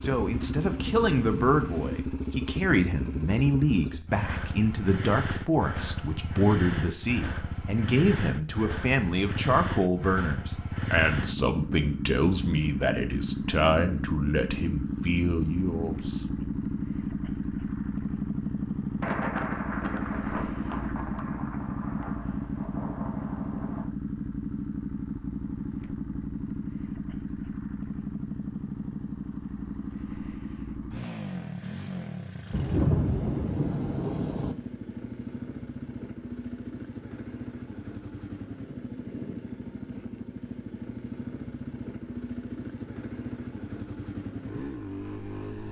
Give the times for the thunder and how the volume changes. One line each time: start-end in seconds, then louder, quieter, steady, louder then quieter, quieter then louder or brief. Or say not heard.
0.0-2.0 brief
19.0-23.9 quieter
32.5-34.5 brief.